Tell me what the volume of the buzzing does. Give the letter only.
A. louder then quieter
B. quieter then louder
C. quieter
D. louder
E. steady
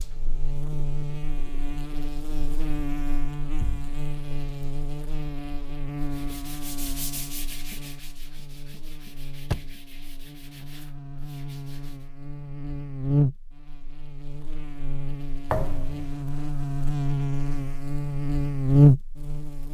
B.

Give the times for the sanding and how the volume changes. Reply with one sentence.
The sanding can be heard from 6.0 to 12.1 s, getting quieter.